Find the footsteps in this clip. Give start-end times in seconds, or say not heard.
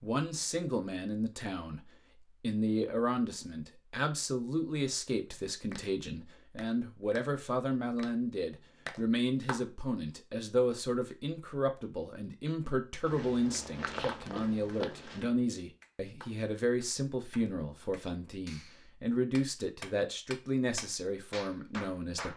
13.1-15.3.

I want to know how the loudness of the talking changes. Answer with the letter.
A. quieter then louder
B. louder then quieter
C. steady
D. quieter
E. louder
C.